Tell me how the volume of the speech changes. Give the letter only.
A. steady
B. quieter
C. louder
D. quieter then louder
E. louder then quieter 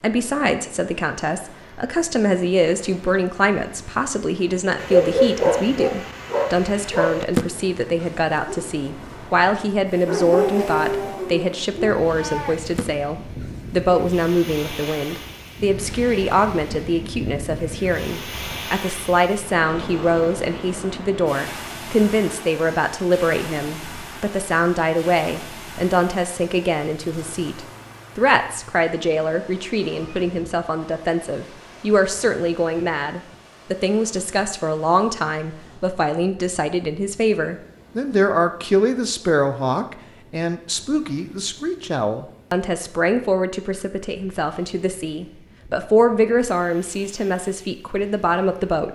A.